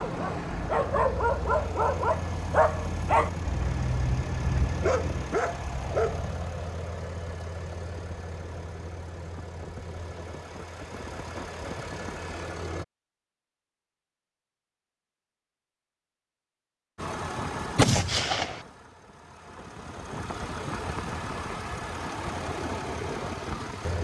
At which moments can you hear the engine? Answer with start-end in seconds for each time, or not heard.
0.0-12.8, 16.9-23.9.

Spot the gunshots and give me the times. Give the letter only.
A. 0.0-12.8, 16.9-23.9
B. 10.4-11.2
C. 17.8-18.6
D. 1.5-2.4
C.